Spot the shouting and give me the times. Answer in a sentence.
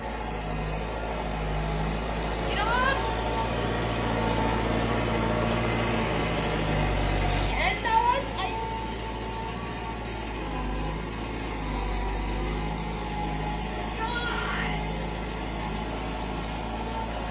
You can hear the shouting from 2.5 to 3.0 s, from 7.5 to 8.6 s and from 13.9 to 14.8 s.